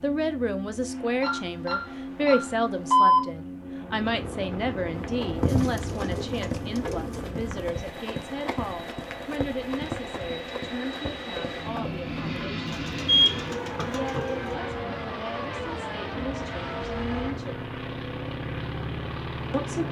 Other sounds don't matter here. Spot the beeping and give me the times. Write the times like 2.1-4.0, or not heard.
1.2-3.2, 13.1-14.2.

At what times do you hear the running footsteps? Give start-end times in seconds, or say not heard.
4.9-12.4.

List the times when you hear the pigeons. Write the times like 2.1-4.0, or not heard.
5.4-7.2, 12.7-14.6.